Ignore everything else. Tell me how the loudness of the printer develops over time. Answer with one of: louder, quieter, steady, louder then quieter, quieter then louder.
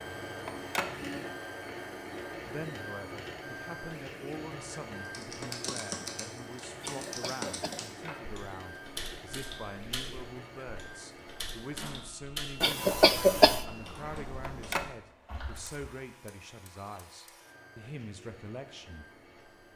quieter.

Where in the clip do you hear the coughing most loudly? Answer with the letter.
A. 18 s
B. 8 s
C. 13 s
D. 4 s
C.